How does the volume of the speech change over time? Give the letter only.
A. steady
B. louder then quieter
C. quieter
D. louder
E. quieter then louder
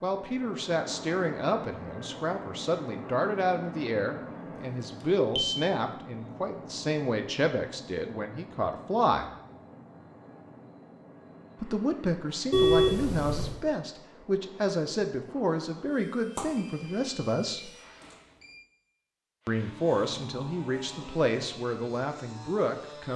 A.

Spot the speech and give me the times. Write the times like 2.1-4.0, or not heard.
0.0-9.3, 11.6-17.7, 19.4-23.1.